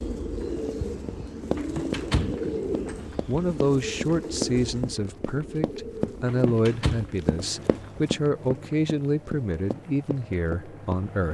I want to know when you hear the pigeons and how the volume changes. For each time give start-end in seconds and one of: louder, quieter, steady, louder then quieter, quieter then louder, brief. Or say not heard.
0.0-11.0 quieter.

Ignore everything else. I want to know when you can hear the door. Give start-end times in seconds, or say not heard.
1.6-3.4, 6.2-8.1.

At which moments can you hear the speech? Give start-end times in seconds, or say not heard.
3.2-11.2.